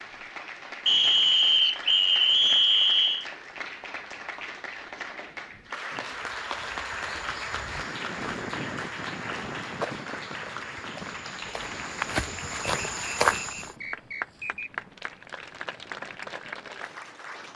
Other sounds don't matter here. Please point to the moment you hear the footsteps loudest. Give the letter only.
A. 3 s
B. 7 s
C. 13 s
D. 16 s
C.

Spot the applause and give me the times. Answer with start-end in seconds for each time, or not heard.
0.0-17.5.